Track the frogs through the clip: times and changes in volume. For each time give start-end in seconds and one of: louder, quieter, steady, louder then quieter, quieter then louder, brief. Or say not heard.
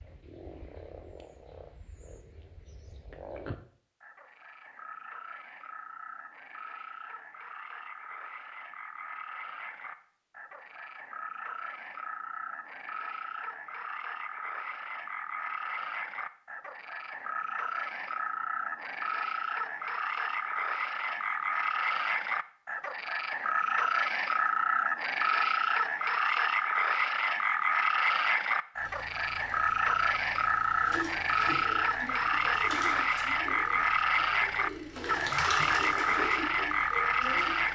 0.0-37.7 louder.